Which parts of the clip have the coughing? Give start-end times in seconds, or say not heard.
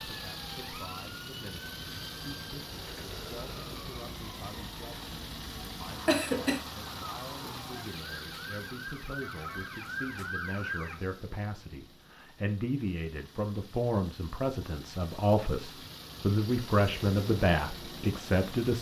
5.7-6.6.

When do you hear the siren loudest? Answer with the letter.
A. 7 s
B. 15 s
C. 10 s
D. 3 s
C.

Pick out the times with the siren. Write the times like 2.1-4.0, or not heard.
0.0-11.0.